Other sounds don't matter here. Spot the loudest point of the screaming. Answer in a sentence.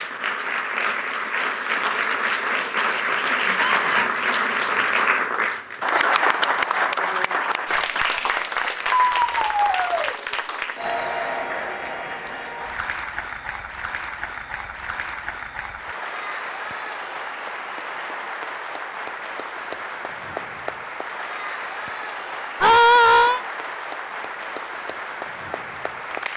The loudest moment of the screaming is at 23 seconds.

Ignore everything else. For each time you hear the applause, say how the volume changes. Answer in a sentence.
You can hear the applause from 0.0 to 26.3 s, getting quieter.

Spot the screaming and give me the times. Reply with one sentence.
The screaming can be heard from 3.5 to 4.0 s, from 9.1 to 10.2 s and from 22.6 to 23.4 s.